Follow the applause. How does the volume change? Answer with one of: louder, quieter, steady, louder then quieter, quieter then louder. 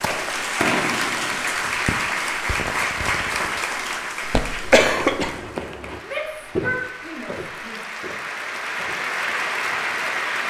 quieter then louder.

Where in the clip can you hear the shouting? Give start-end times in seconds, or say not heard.
6.0-7.8.